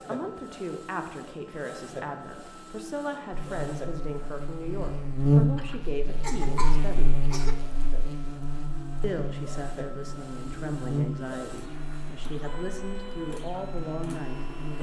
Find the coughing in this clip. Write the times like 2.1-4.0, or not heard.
5.5-7.5.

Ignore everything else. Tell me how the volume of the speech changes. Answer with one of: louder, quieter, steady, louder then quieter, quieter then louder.
steady.